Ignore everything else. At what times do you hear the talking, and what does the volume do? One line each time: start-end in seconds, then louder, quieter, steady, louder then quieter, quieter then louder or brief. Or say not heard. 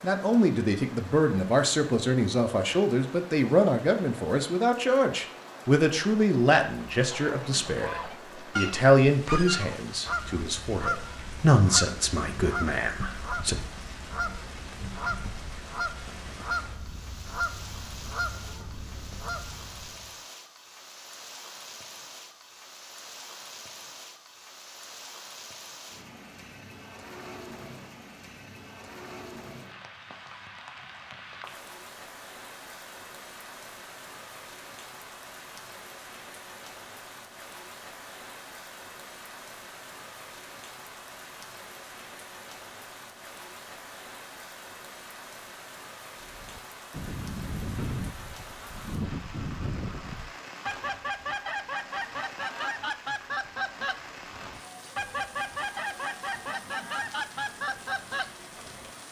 0.0-13.6 steady.